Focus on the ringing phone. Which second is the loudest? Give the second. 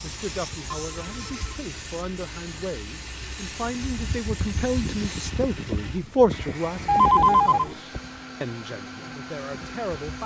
7 s.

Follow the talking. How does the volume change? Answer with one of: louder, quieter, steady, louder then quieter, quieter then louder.
louder then quieter.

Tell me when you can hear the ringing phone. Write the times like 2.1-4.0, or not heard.
0.7-1.4, 6.8-7.8.